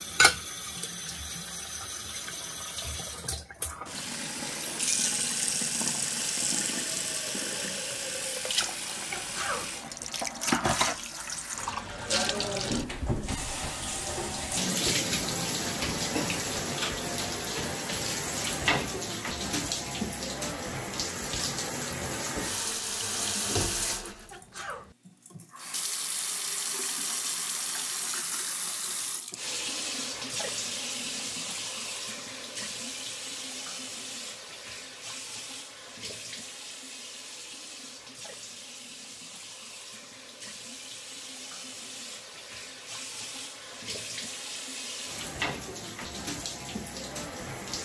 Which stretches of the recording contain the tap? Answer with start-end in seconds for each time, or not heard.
0.0-47.8.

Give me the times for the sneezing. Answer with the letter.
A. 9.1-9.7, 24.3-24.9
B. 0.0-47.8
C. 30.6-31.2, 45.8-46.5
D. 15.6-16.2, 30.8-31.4
A.